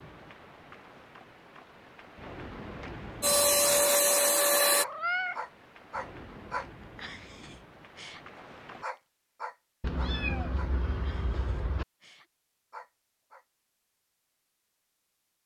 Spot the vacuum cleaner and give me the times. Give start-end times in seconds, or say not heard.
3.2-4.8.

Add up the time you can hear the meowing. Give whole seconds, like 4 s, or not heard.
3 s.